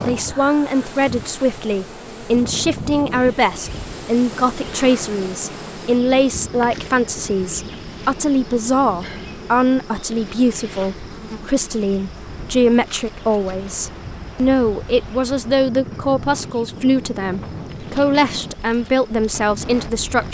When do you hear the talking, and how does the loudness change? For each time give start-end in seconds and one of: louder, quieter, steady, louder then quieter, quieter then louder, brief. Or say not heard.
0.1-20.3 steady.